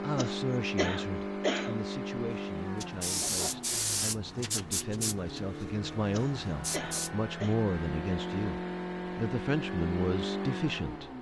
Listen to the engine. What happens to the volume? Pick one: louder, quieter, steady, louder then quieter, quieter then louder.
quieter then louder.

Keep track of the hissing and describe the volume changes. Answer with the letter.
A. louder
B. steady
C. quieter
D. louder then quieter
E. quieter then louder
E.